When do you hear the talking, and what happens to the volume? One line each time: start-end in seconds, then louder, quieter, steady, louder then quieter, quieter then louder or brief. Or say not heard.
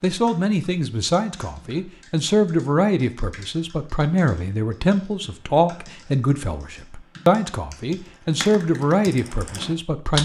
0.0-10.2 steady.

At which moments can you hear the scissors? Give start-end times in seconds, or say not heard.
not heard.